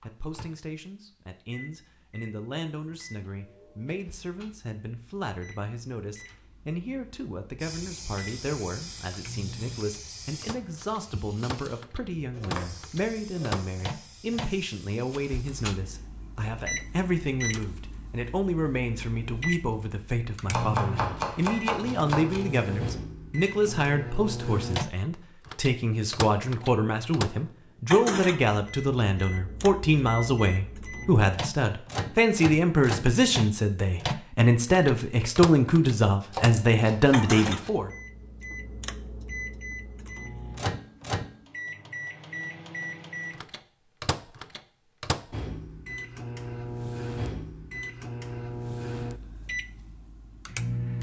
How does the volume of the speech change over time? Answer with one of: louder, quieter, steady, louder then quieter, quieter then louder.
louder.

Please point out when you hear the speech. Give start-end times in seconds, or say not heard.
0.0-37.9.